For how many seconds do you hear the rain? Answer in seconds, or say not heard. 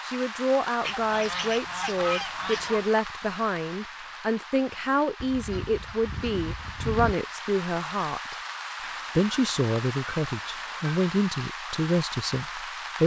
13 s.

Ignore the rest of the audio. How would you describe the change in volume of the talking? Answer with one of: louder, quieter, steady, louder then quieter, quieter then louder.
steady.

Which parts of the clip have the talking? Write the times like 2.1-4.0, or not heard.
0.1-8.3, 9.2-13.0.